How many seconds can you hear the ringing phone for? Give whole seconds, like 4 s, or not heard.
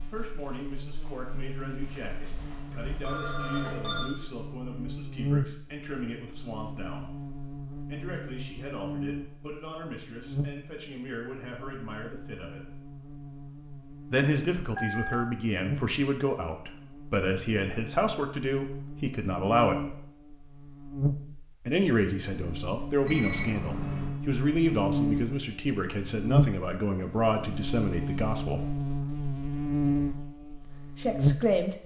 4 s.